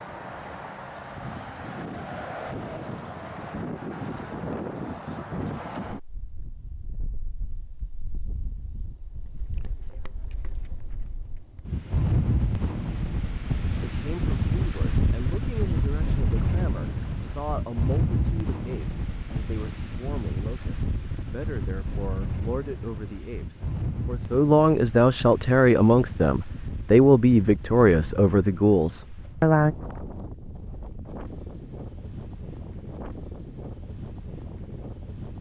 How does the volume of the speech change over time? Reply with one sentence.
The loudness of the speech goes up.